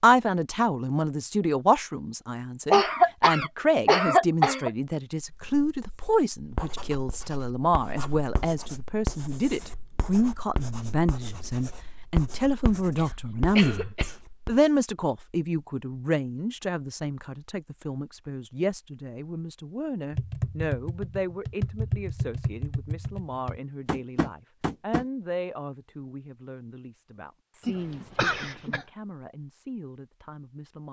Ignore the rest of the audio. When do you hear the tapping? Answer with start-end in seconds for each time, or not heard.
20.1-25.1.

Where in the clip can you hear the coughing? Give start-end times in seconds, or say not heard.
2.7-4.7, 12.9-14.2, 27.6-28.9.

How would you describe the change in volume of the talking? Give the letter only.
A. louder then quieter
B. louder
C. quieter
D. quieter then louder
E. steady
C.